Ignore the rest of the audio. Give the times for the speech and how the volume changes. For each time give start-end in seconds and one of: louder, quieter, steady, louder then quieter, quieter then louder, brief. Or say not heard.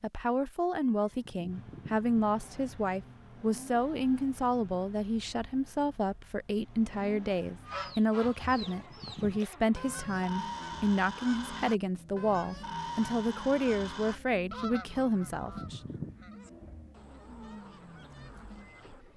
0.0-15.8 steady.